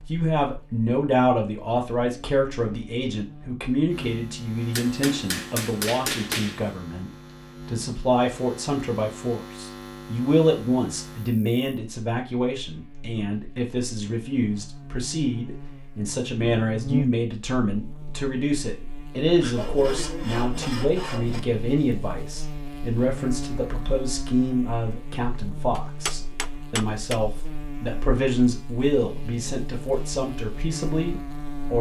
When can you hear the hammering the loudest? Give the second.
6 s.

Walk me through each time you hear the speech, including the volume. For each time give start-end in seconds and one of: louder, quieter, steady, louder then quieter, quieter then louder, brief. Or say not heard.
0.1-31.7 steady.